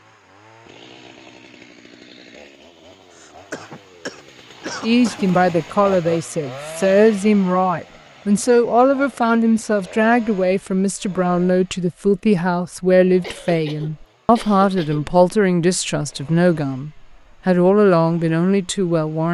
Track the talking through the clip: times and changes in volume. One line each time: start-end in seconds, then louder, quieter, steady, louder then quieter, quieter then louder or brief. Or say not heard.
4.8-19.2 steady.